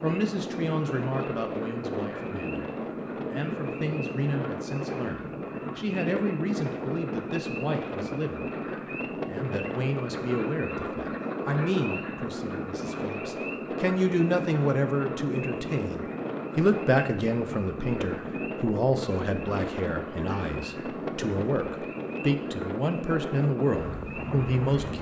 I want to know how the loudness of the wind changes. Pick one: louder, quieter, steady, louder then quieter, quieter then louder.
steady.